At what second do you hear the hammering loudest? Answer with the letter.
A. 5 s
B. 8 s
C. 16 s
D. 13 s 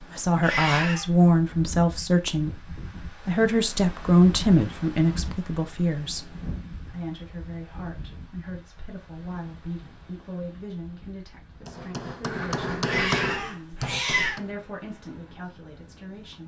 D.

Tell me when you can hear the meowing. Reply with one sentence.
You can hear the meowing from 0.4 to 1.1 s and from 12.8 to 14.4 s.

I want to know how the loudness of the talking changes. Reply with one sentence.
The loudness of the talking goes down.